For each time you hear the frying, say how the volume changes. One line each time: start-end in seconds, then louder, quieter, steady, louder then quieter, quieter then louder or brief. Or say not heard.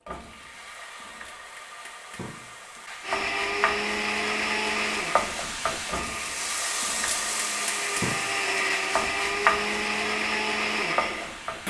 0.1-11.6 louder.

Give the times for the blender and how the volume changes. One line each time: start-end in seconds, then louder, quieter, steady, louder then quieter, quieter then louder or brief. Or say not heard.
3.0-11.6 quieter then louder.